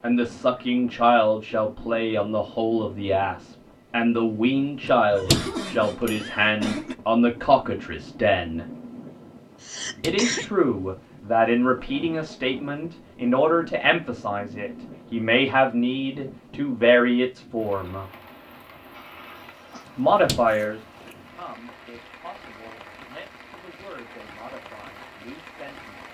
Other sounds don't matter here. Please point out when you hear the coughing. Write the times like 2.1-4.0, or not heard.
5.1-7.0, 9.6-10.4, 18.9-19.9.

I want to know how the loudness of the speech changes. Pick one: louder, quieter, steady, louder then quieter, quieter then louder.
quieter.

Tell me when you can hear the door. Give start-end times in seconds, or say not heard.
4.8-6.1, 9.6-10.3, 19.9-21.1.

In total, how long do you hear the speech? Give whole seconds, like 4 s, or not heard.
23 s.